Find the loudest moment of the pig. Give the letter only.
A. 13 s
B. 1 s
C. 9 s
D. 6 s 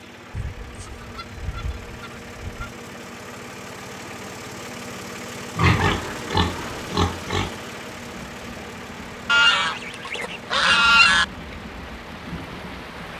D.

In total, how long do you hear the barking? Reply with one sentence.
The barking can't be heard in this clip.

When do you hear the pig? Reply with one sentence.
You can hear the pig from 5.5 to 7.5 s.